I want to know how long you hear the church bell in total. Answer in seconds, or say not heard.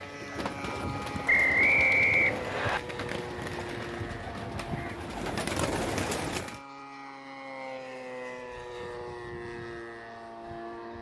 not heard.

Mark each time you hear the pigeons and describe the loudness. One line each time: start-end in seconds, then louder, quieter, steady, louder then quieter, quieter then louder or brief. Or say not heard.
0.0-6.6 louder.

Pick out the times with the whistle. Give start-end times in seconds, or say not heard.
1.2-2.8.